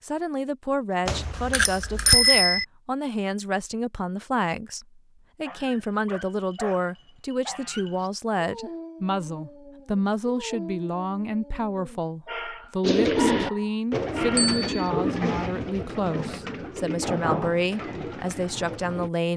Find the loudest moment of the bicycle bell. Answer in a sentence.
The volume of the bicycle bell peaks at 2 seconds.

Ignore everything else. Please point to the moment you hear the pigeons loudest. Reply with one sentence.
The volume of the pigeons peaks at 13 seconds.